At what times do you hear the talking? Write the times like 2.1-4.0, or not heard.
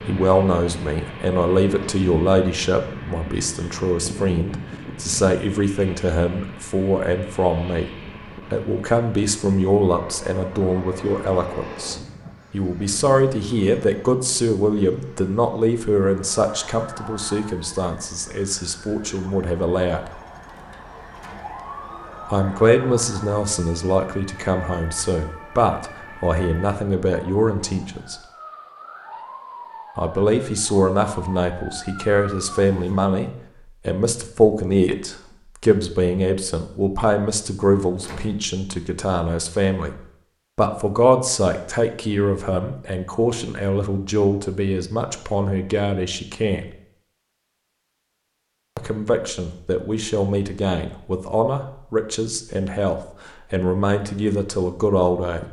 0.1-7.9, 8.5-20.1, 22.3-28.2, 29.9-46.6, 48.8-55.4.